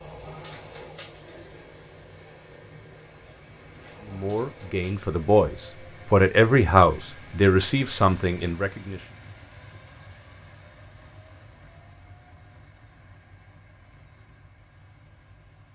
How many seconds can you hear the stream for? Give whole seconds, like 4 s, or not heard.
not heard.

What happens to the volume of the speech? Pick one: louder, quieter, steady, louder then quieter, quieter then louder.
louder then quieter.